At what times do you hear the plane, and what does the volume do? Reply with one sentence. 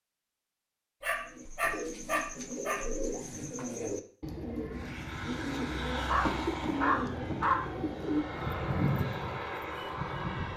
The plane can be heard from 4.8 to 10.5 s, getting quieter then louder.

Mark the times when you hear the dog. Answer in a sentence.
The dog can be heard from 1.0 to 2.8 s and from 6.0 to 7.7 s.